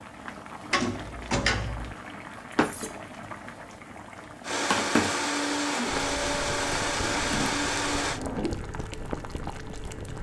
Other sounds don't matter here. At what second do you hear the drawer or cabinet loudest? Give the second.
1 s.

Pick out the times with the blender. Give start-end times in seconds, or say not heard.
4.4-8.2.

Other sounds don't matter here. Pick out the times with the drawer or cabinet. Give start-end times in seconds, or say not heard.
0.7-1.9, 7.0-8.6.